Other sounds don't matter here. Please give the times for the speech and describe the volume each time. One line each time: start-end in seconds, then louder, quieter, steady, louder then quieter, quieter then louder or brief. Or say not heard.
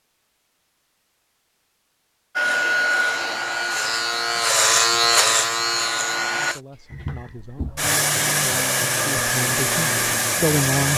6.3-10.9 louder.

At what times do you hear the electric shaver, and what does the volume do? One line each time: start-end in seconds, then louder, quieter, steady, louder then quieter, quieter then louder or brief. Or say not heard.
2.4-6.6 louder then quieter.